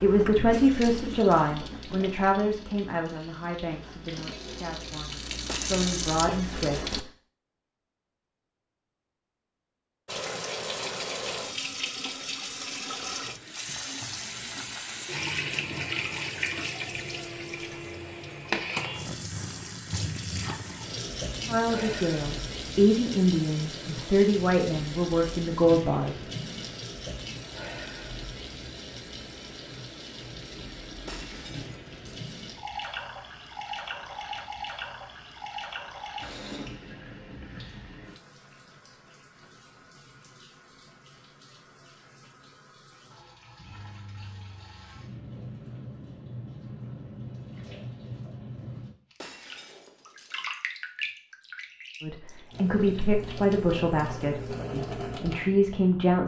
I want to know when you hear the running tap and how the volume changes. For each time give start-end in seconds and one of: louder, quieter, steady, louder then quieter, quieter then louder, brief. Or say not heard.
0.0-7.0 quieter then louder
10.1-56.2 quieter then louder.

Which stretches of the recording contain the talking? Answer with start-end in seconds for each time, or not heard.
0.0-7.0, 21.4-26.2, 52.0-56.2.